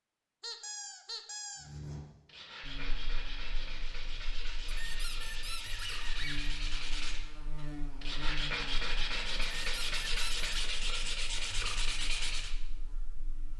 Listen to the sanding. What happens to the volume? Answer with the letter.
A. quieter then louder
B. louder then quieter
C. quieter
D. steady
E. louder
E.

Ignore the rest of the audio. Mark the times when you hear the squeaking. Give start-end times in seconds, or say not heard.
0.4-1.7, 4.7-6.5, 9.4-10.5.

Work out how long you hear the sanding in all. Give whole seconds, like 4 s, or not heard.
11 s.